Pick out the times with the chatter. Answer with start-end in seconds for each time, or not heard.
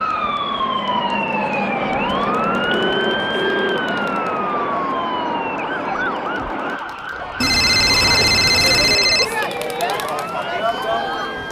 0.0-11.4.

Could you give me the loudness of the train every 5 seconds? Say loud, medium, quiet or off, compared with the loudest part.
loud, loud, off.